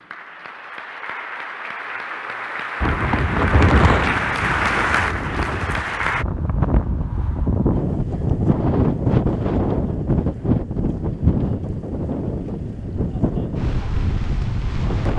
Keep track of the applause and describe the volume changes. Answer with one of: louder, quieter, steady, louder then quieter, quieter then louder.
louder.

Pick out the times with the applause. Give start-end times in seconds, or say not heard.
0.0-6.2.